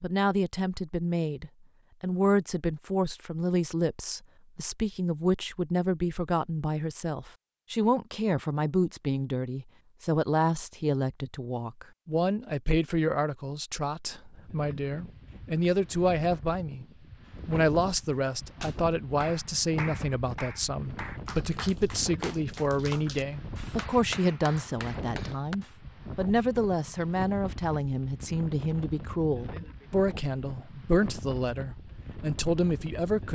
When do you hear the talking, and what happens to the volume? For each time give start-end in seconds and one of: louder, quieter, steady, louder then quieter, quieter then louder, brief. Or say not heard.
0.0-16.9 steady
17.4-33.2 steady.